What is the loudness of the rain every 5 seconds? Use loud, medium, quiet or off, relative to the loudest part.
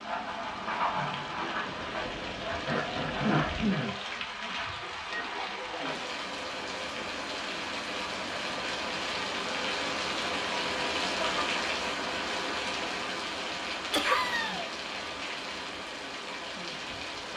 loud, loud, loud, medium.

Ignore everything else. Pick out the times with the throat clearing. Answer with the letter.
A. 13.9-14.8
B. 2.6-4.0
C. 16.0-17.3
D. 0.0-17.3
B.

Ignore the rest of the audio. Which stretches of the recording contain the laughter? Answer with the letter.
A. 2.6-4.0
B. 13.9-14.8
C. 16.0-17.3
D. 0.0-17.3
B.